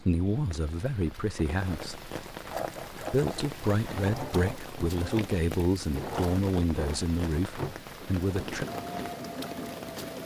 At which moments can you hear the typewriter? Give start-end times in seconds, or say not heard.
not heard.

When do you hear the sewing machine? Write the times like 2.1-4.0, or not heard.
2.5-10.2.